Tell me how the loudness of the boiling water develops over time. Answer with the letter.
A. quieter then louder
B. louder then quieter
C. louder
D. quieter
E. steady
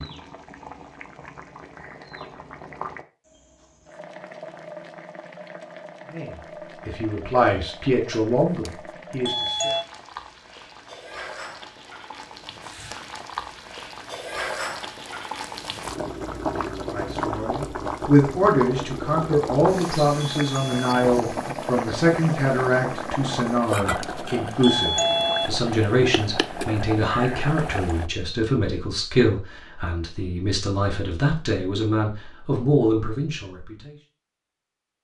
C.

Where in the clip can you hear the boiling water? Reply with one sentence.
You can hear the boiling water from 0.0 to 28.1 s.